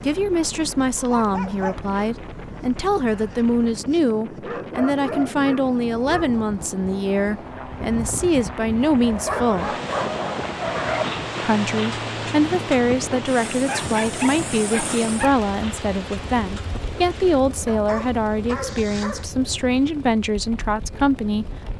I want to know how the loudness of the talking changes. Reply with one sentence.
The volume of the talking stays about the same.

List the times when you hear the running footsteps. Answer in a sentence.
You can't hear the running footsteps here.